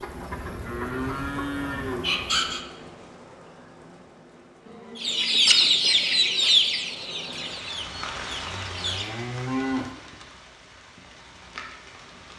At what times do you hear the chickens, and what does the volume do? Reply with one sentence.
You can hear the chickens briefly from 0.0 to 2.6 s; and from 5.0 to 9.2 s, getting quieter.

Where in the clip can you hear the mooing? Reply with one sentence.
The mooing can be heard from 0.3 to 2.1 s, from 4.7 to 6.5 s and from 8.5 to 9.9 s.